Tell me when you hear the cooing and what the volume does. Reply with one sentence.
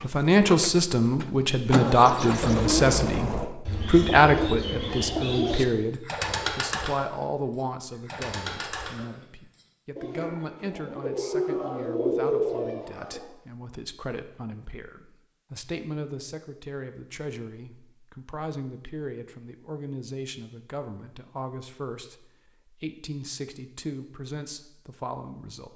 You can hear the cooing from 2.3 to 13.2 s, getting quieter then louder.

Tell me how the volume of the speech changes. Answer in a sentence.
The volume of the speech goes down.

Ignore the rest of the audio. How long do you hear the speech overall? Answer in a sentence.
The speech can be heard for 26 seconds in total.